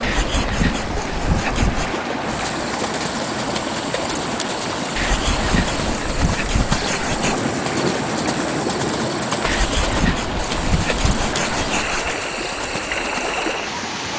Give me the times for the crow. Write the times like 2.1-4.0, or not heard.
not heard.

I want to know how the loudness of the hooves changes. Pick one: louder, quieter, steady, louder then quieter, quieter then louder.
steady.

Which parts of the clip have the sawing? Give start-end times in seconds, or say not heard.
0.0-2.0, 5.0-7.4, 9.4-12.2.